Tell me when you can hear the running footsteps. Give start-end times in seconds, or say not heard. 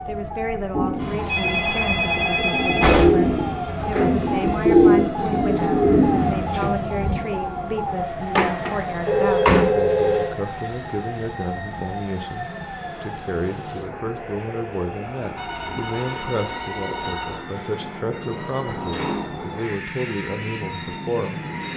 not heard.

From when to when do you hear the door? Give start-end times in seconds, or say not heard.
2.8-3.4, 8.3-9.8, 18.6-19.5.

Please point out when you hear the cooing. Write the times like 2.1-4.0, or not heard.
0.7-7.2.